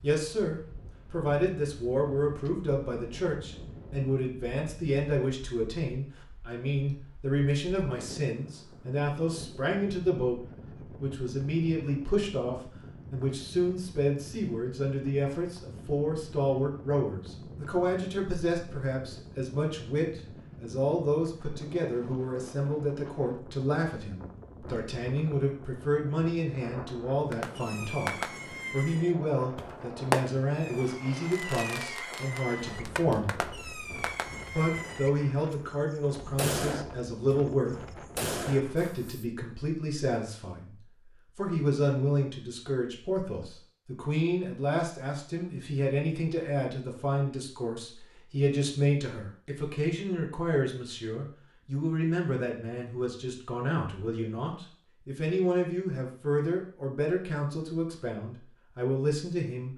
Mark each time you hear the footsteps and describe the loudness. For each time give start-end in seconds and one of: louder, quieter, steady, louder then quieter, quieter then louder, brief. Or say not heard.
not heard.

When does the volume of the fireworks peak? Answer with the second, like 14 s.
30 s.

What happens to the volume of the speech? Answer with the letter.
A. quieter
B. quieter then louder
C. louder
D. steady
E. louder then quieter
D.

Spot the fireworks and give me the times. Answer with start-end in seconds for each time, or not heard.
27.3-35.5, 36.4-36.9, 38.1-39.2.